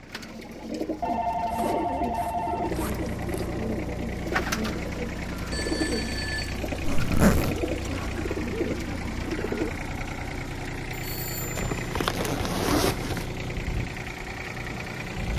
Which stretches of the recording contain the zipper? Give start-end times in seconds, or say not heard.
1.4-3.5, 6.8-7.5, 11.6-13.2.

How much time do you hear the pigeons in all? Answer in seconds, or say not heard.
10 s.